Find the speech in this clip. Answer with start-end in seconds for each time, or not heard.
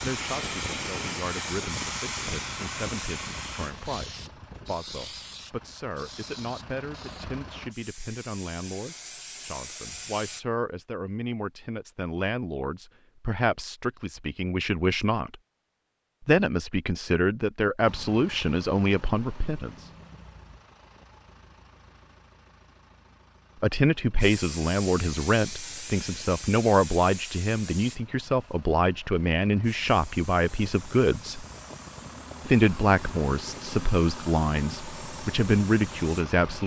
0.0-15.4, 16.2-19.9, 23.6-31.4, 32.5-36.6.